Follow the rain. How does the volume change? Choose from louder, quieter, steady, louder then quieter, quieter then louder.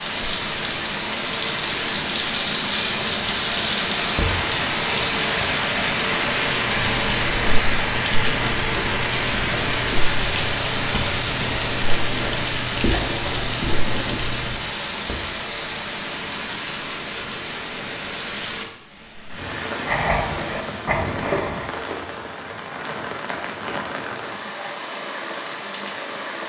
quieter.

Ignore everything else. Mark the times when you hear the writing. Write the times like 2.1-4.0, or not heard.
6.7-14.6, 19.9-21.7.